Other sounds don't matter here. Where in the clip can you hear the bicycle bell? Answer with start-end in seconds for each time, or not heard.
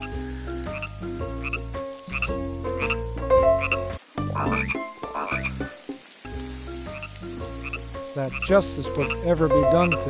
not heard.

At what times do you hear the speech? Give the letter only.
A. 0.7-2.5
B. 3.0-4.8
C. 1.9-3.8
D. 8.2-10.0
D.